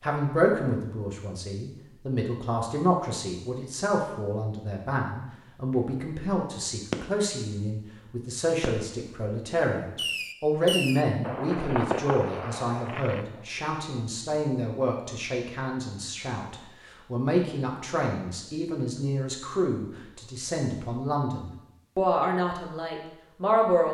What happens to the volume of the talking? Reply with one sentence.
The loudness of the talking stays about the same.